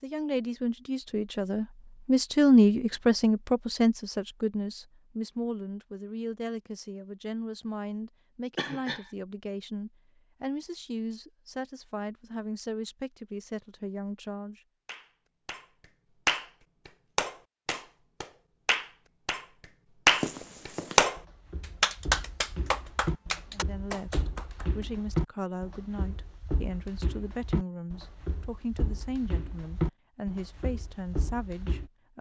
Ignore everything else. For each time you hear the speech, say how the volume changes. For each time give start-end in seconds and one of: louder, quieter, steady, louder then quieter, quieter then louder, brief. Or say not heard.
0.0-14.6 quieter
23.5-32.1 steady.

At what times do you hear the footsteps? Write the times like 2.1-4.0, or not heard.
20.1-31.9.